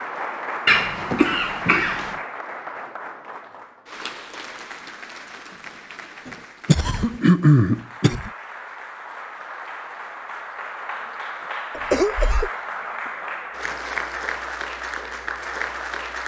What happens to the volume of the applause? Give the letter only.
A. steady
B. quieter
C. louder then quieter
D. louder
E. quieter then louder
E.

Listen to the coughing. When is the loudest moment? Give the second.
7 s.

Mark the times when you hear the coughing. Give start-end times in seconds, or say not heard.
0.7-2.1, 6.2-8.3, 11.7-12.5.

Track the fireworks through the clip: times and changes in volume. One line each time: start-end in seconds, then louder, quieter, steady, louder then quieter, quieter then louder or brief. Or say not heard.
not heard.